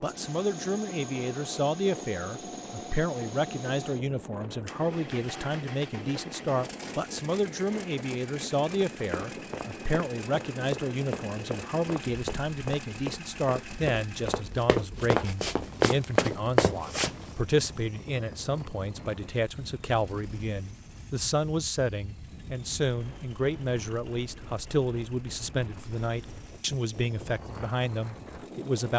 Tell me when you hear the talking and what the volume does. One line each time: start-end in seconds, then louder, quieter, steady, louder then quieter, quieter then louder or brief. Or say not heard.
0.0-28.9 steady.